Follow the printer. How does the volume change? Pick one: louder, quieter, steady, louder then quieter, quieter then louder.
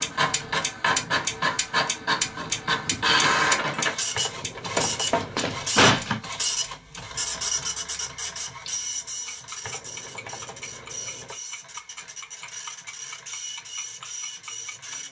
quieter.